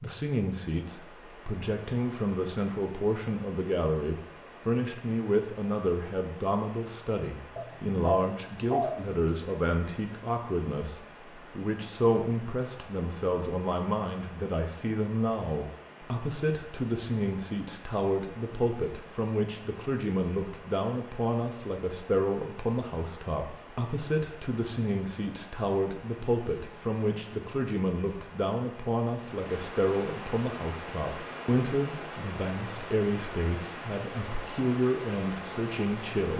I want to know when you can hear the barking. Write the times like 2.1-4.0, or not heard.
7.5-9.2.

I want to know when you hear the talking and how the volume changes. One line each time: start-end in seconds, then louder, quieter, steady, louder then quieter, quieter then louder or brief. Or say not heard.
0.0-36.3 steady.